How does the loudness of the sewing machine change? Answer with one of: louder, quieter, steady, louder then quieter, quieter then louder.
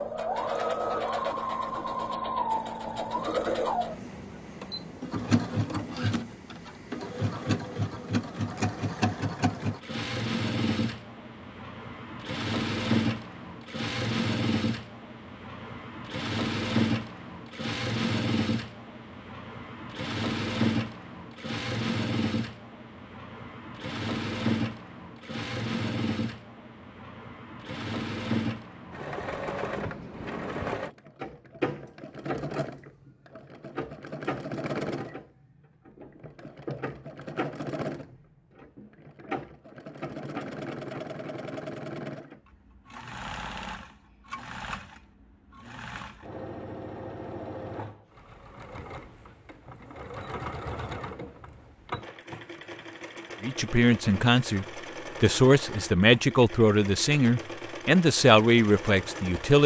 quieter.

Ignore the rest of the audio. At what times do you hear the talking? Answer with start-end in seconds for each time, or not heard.
53.4-59.6.